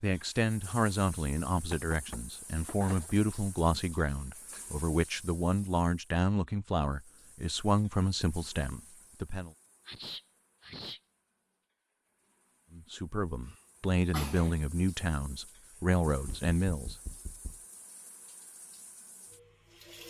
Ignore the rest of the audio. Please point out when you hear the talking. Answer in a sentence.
You can hear the talking from 0.0 to 9.5 s and from 12.7 to 16.9 s.